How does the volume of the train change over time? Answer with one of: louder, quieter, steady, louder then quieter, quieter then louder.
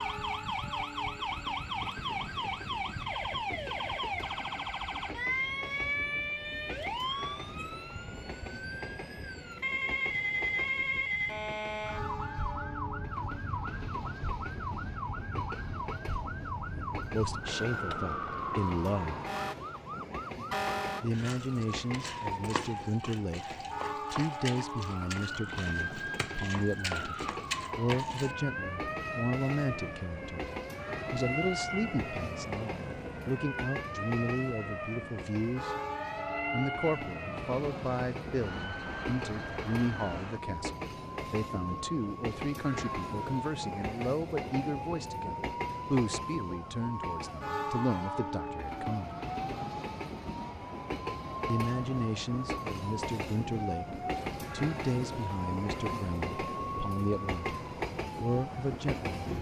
louder.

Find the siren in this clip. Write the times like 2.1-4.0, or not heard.
0.0-59.3.